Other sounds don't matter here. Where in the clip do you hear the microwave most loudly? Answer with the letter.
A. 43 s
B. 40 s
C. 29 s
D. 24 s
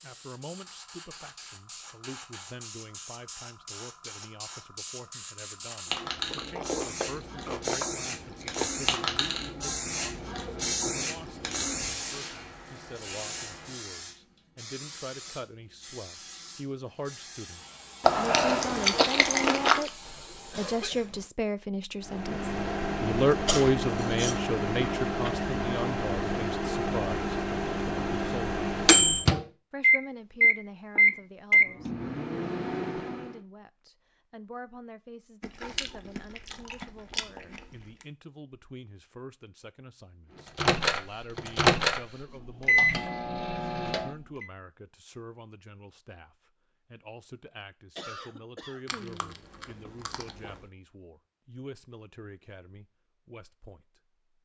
C.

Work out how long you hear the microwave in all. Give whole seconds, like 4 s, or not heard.
15 s.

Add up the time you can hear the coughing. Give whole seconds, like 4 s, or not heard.
3 s.